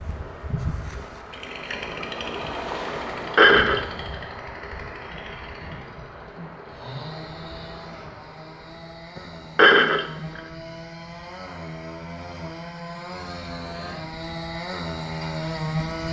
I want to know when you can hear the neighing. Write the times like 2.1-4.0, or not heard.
3.4-3.9, 9.6-10.4.